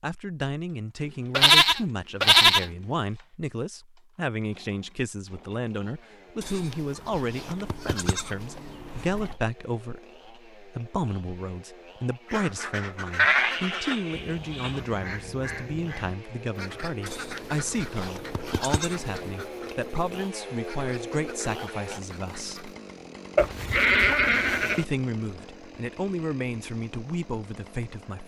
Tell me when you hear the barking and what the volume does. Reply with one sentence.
You can't hear the barking here.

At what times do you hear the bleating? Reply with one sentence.
The bleating can be heard from 1.3 to 2.6 s, from 6.4 to 9.3 s, from 13.2 to 14.7 s, from 17.1 to 19.3 s and from 23.4 to 24.9 s.